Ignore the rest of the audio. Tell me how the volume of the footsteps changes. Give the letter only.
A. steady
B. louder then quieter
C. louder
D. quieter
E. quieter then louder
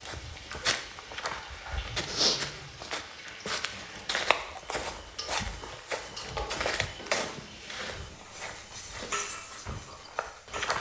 D.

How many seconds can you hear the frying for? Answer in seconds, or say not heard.
11 s.